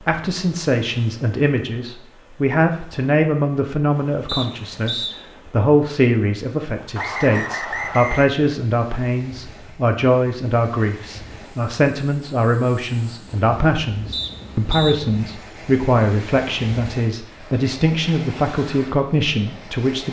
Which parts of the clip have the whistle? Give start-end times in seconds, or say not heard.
4.2-5.2, 7.0-8.3, 14.1-14.9.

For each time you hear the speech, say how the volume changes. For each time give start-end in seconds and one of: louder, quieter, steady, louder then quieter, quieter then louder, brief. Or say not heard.
0.1-20.0 steady.